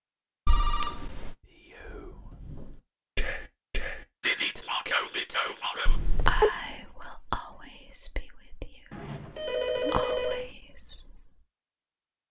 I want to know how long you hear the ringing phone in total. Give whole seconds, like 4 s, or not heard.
3 s.